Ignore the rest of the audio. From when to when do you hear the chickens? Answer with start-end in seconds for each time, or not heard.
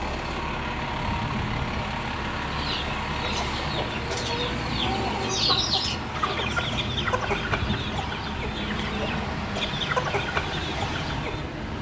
2.5-11.4.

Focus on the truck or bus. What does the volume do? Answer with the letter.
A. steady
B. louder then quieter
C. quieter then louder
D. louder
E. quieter
A.